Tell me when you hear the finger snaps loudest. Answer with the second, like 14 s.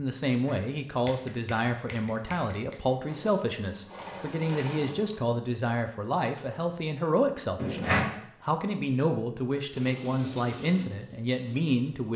8 s.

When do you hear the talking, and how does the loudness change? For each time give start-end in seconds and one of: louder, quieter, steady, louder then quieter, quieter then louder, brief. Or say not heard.
0.0-12.1 steady.